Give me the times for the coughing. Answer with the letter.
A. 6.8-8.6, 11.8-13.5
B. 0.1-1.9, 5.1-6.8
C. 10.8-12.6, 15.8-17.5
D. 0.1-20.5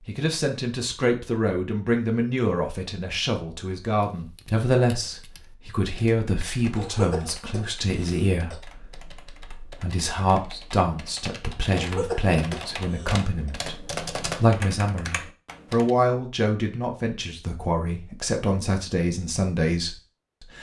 A.